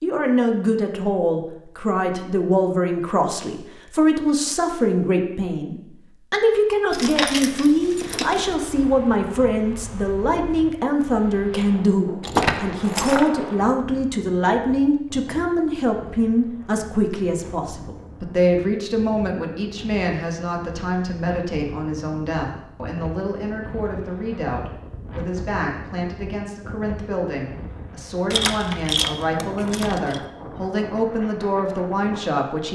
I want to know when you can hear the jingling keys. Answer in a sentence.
The jingling keys can be heard from 6.9 to 8.6 s, from 12.2 to 13.3 s and from 28.3 to 30.2 s.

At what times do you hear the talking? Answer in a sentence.
You can hear the talking from 0.0 to 32.7 s.